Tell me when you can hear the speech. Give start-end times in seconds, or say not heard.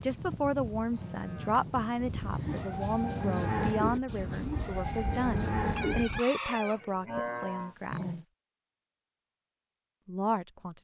0.0-8.2, 10.1-10.8.